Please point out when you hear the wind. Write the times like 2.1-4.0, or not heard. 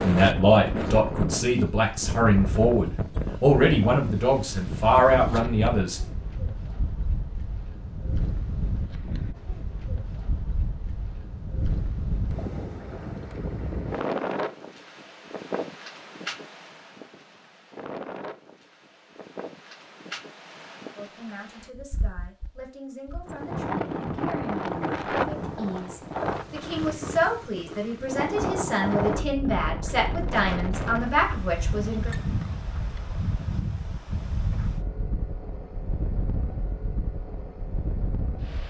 0.0-38.6.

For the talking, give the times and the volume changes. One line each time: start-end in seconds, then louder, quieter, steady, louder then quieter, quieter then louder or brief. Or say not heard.
0.0-6.0 steady
20.9-32.1 louder.